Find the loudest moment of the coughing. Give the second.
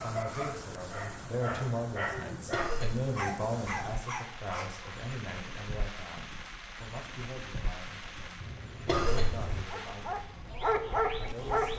9 s.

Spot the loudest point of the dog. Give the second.
11 s.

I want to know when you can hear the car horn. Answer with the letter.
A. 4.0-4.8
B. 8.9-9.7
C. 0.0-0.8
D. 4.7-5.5
B.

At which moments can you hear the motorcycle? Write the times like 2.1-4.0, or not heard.
not heard.